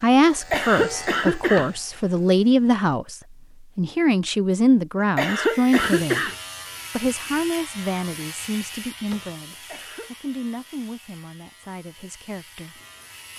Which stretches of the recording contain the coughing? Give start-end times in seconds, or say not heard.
0.3-1.7, 5.0-6.3, 9.5-10.2.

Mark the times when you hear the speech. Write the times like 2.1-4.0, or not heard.
0.0-3.1, 3.8-6.2, 7.0-12.8.